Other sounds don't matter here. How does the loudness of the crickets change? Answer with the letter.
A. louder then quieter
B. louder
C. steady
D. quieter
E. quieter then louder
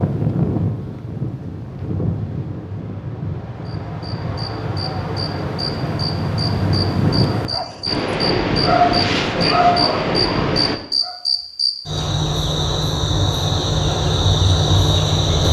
B.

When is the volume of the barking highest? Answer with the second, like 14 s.
9 s.